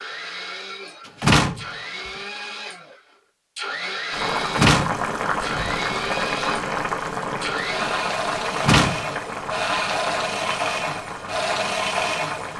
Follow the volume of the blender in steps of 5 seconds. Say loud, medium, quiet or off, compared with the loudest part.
medium, loud, loud.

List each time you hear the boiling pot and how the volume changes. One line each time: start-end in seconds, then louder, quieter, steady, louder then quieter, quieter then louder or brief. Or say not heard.
4.1-12.5 quieter.